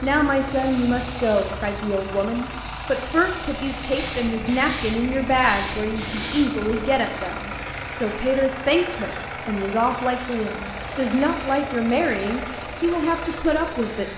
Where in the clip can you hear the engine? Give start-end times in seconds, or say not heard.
0.0-14.1.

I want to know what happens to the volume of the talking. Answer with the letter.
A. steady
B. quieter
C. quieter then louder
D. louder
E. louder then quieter
A.